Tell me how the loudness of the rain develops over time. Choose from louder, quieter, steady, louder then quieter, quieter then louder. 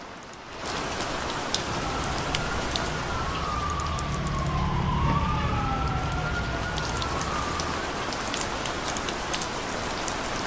quieter then louder.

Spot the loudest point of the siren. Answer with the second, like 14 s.
5 s.